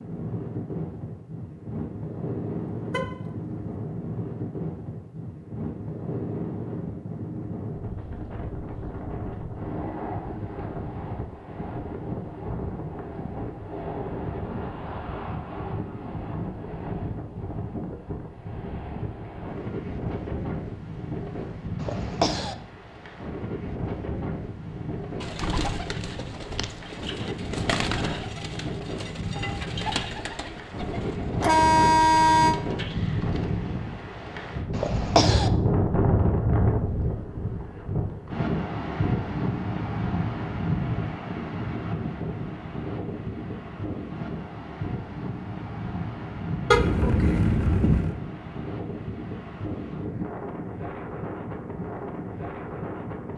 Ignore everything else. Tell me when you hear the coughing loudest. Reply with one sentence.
The volume of the coughing peaks at 35 seconds.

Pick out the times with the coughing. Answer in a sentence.
The coughing can be heard from 21.8 to 22.6 s and from 34.7 to 35.5 s.